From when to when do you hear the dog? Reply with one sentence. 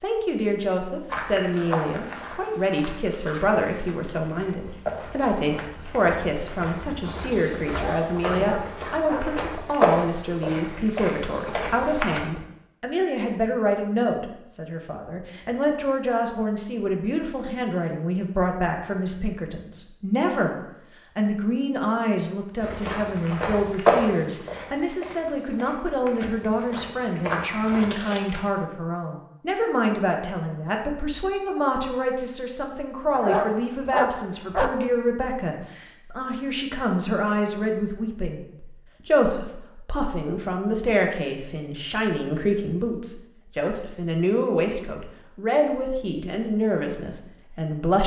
The dog can be heard from 7.7 to 9.4 s and from 33.1 to 34.9 s.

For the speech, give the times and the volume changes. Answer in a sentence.
You can hear the speech from 0.0 to 20.6 s, at a steady volume; and from 21.1 to 48.0 s, at a steady volume.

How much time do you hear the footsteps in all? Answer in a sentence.
The footsteps can be heard for 17 seconds in total.